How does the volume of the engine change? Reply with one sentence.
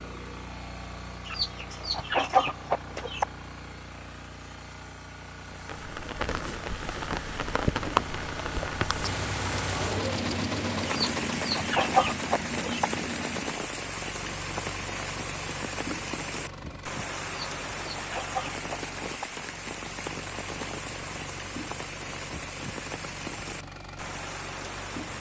The loudness of the engine goes up, then down.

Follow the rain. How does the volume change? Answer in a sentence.
The loudness of the rain goes down.